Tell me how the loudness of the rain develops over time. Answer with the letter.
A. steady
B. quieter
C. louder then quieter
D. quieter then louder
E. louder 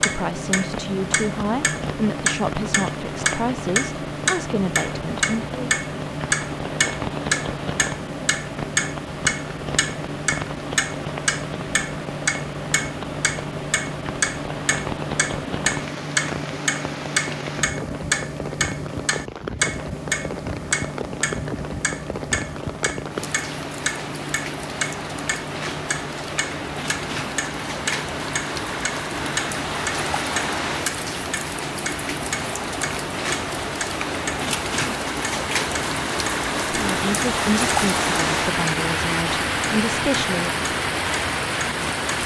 E.